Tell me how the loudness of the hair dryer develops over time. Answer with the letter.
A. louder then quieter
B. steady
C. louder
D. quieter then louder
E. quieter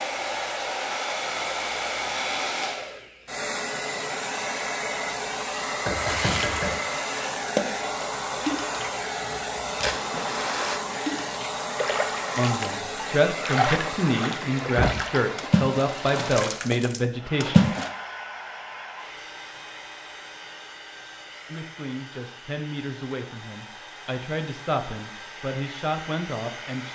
E.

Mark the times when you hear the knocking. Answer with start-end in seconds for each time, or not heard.
5.8-6.8.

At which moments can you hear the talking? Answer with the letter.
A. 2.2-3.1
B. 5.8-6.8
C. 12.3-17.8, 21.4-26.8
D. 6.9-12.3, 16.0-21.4
C.